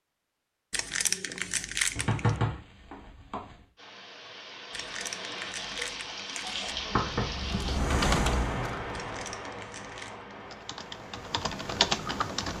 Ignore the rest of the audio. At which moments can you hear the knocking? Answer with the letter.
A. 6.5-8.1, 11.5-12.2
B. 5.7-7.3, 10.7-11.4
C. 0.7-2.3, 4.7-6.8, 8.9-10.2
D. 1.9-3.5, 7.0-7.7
D.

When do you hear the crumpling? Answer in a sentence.
You can hear the crumpling from 0.7 to 2.3 s, from 4.7 to 6.8 s and from 8.9 to 10.2 s.